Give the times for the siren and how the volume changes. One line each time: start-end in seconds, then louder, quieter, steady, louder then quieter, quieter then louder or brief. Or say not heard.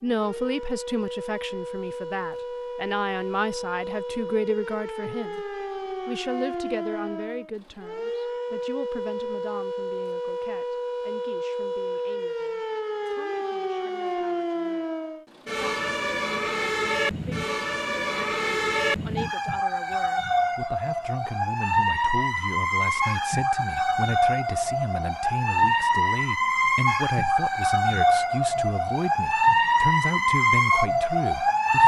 0.0-31.8 louder.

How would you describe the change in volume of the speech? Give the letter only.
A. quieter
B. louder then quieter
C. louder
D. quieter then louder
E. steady
D.